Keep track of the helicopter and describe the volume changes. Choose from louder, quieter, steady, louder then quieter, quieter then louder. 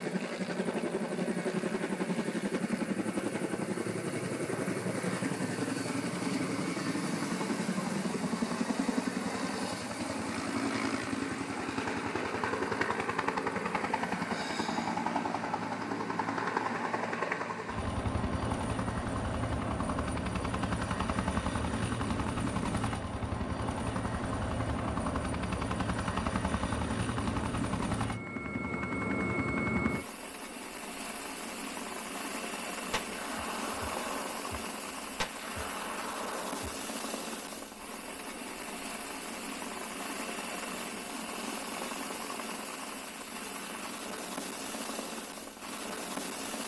quieter.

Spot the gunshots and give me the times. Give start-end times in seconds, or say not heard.
32.9-36.8.